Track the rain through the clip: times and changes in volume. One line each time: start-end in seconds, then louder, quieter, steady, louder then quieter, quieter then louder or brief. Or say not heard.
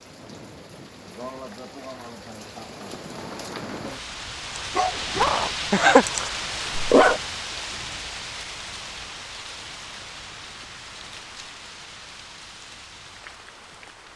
0.0-14.1 louder then quieter.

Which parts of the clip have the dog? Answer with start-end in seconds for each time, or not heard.
4.5-7.2.